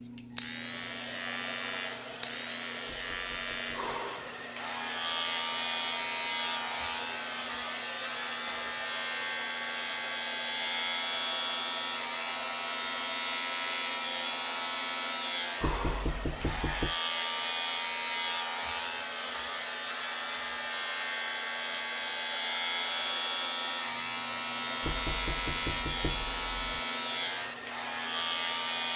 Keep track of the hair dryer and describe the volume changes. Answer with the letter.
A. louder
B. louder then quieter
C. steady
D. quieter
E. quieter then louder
C.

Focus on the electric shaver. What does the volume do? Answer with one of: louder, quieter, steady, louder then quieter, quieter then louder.
steady.